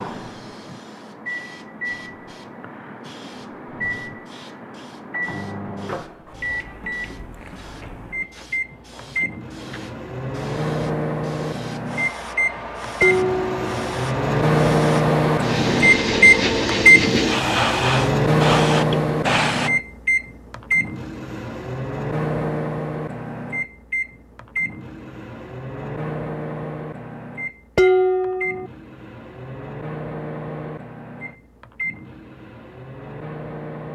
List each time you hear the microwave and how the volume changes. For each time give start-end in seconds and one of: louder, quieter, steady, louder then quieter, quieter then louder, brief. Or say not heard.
0.0-33.9 louder then quieter.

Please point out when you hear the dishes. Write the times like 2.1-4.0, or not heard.
13.0-13.8, 27.8-28.7.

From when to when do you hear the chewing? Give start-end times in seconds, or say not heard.
not heard.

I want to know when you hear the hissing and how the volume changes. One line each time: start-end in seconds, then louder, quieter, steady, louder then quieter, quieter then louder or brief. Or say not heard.
0.0-19.7 louder.